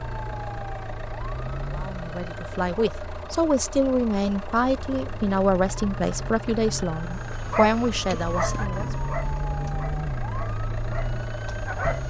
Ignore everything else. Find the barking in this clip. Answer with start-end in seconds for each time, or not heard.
7.2-12.0.